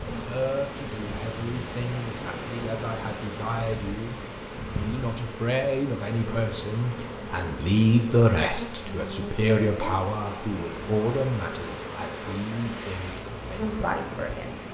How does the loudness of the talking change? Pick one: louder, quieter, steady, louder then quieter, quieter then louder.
louder then quieter.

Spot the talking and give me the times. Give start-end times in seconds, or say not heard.
0.1-14.6.